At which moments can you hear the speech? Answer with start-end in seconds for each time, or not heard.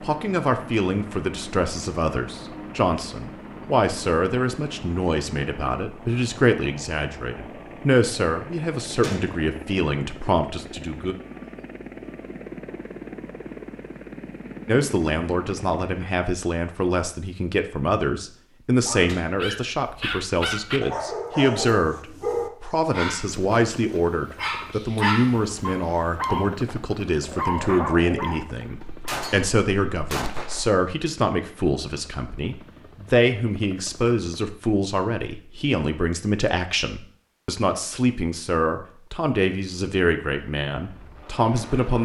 0.0-11.2, 14.7-42.0.